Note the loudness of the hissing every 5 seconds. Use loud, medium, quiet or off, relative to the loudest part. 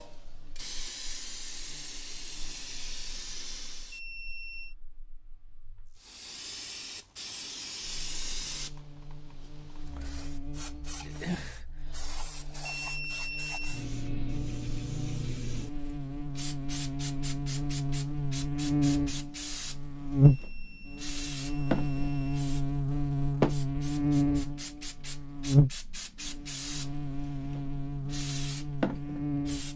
medium, medium, medium, medium, loud, medium.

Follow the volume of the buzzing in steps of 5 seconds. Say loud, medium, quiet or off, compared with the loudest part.
quiet, quiet, quiet, medium, loud, loud.